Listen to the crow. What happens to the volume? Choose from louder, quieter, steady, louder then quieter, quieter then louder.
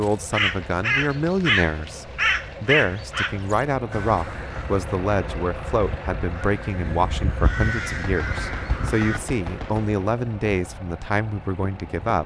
quieter then louder.